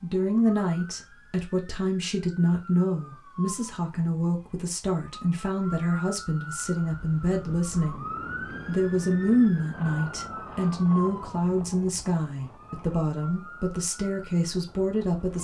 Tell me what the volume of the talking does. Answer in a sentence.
The volume of the talking stays about the same.